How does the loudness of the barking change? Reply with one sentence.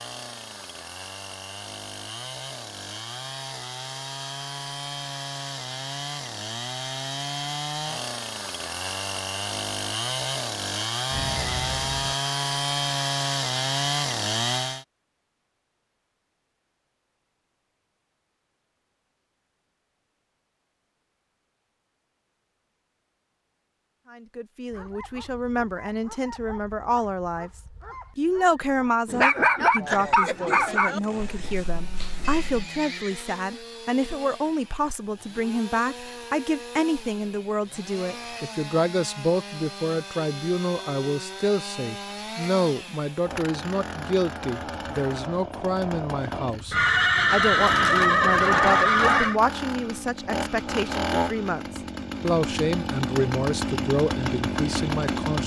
The volume of the barking goes up, then down.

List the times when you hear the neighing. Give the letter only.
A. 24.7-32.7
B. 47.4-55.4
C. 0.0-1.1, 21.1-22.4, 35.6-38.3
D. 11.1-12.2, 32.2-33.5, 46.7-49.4
D.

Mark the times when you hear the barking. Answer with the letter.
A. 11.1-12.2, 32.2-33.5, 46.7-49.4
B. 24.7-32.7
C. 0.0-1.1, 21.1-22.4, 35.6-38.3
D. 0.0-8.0
B.